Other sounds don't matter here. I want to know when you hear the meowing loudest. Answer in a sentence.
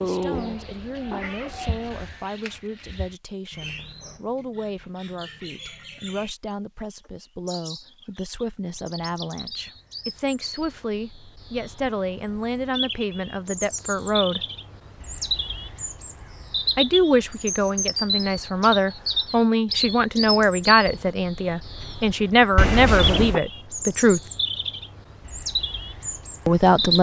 The volume of the meowing peaks at 23 seconds.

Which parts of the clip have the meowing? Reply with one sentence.
The meowing can be heard from 0.3 to 2.1 s and from 22.6 to 23.4 s.